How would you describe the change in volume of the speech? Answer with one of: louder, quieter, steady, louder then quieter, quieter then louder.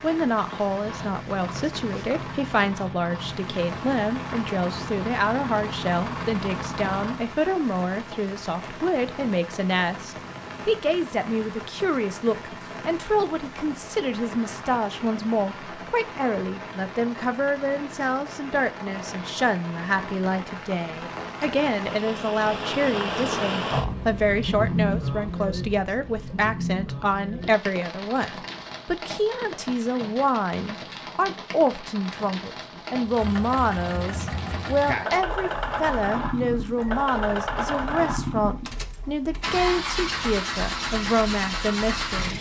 steady.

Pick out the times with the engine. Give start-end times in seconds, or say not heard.
0.0-7.3, 33.0-42.3.